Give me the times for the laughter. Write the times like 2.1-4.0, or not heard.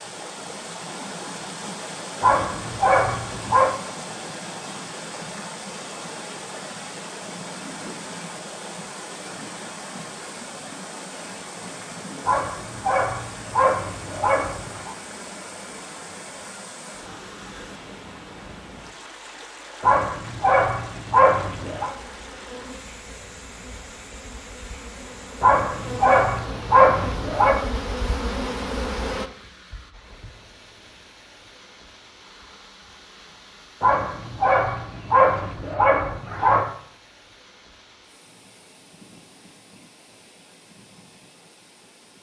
not heard.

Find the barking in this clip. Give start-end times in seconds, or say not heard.
2.2-3.8, 12.2-14.9, 19.8-21.9, 25.4-27.6, 33.8-36.7.